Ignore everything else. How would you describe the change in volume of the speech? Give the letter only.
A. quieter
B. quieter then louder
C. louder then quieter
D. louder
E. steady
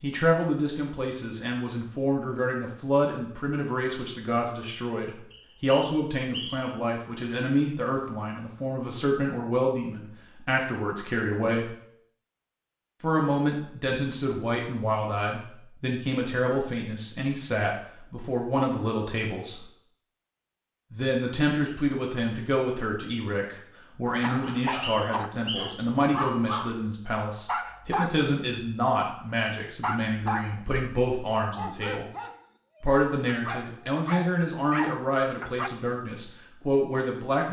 E.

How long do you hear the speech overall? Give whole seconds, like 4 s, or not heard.
34 s.